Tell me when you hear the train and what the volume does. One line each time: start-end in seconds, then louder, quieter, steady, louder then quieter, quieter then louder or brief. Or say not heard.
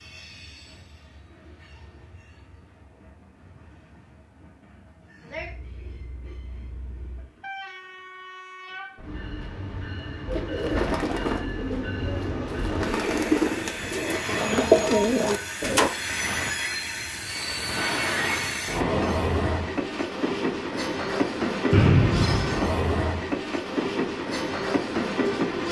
0.0-25.6 louder.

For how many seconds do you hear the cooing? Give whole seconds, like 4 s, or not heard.
6 s.